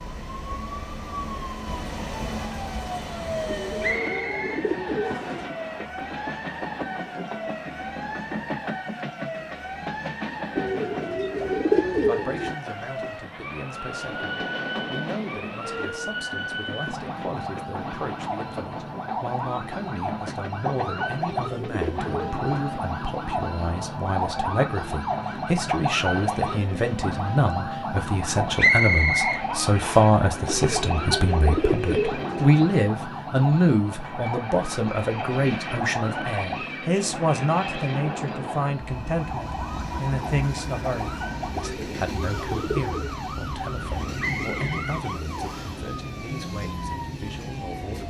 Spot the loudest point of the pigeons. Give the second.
12 s.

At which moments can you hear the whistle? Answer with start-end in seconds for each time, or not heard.
3.8-5.4, 28.6-30.0, 44.1-45.8.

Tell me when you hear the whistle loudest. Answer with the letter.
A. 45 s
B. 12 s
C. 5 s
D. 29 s
D.